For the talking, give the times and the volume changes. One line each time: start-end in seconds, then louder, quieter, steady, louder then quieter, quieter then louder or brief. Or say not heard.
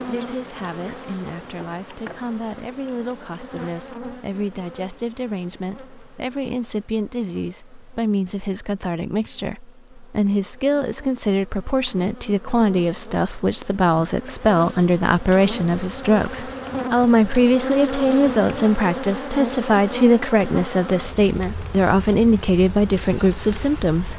0.1-24.1 louder.